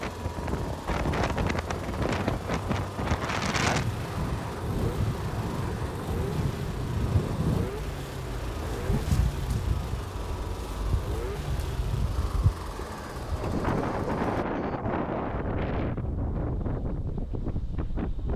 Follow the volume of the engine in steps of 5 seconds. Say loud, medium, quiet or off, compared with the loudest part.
loud, loud, loud, off.